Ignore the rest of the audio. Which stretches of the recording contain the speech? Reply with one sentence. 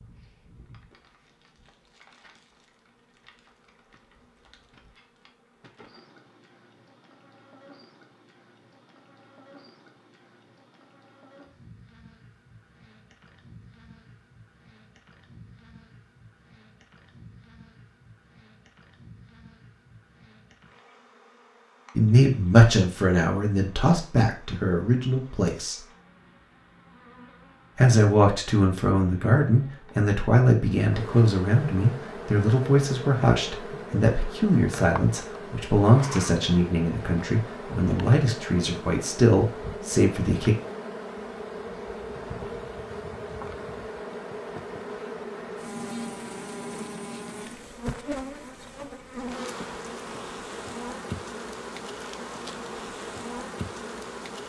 The speech can be heard from 21.9 to 25.8 s and from 27.8 to 40.5 s.